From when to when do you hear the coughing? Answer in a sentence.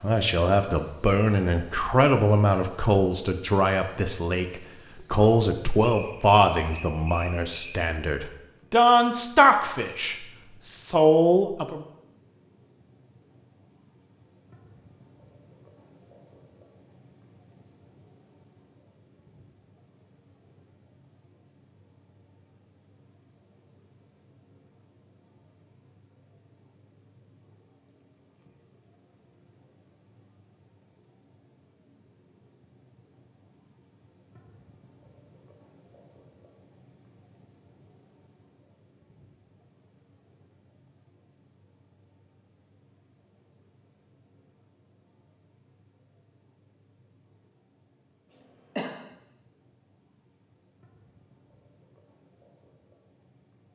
The coughing can be heard from 48.3 to 48.9 s.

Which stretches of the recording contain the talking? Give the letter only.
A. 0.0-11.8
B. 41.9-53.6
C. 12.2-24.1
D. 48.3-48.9
A.